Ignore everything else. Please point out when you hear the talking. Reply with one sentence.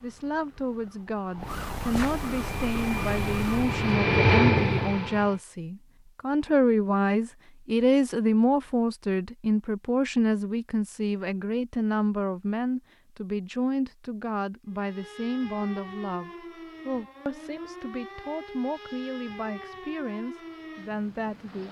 The talking can be heard from 0.0 to 21.6 s.